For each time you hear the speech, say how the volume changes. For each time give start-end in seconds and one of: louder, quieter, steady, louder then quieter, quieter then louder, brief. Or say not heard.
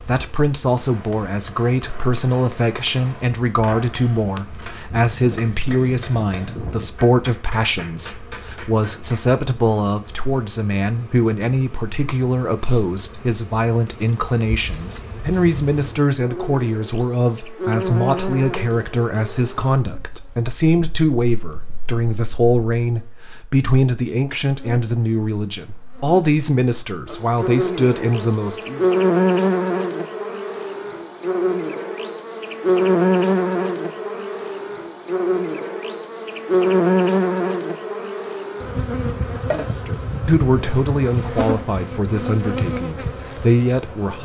0.1-28.9 steady
39.6-44.2 quieter then louder.